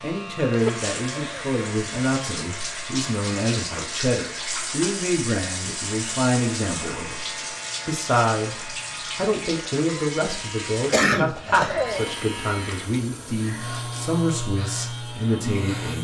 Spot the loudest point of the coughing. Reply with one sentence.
The volume of the coughing peaks at 11 seconds.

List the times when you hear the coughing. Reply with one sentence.
You can hear the coughing from 0.7 to 1.5 s and from 10.9 to 12.1 s.